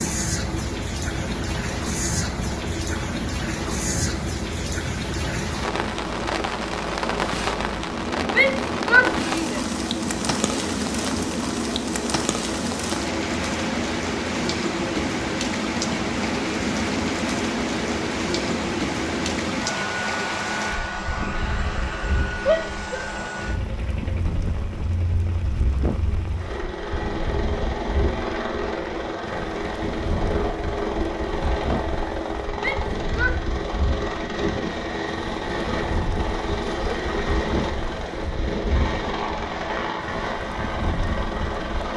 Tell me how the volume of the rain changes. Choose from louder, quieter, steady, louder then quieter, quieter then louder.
quieter.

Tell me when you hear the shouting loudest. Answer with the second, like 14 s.
9 s.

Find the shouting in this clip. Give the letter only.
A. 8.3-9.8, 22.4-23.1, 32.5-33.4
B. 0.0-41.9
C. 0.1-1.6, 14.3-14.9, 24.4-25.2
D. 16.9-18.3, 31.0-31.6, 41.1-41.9
A.